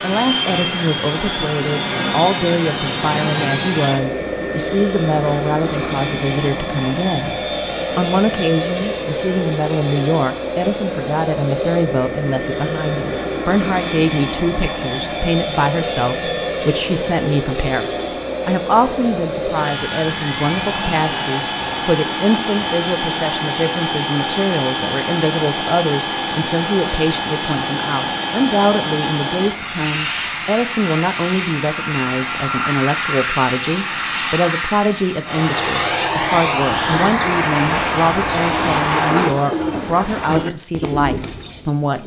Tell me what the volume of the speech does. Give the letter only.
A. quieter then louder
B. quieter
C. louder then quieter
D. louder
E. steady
E.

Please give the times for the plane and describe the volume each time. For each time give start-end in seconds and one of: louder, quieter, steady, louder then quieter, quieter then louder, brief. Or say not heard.
0.0-39.4 steady.